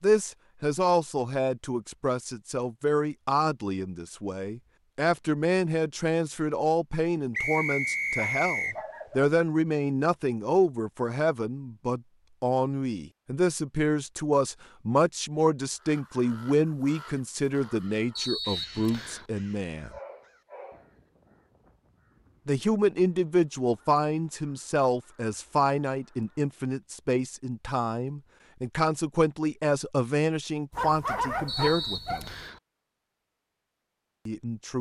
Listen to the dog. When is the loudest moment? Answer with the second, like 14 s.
31 s.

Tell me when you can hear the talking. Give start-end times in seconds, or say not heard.
0.0-19.9, 22.4-32.3, 34.2-34.7.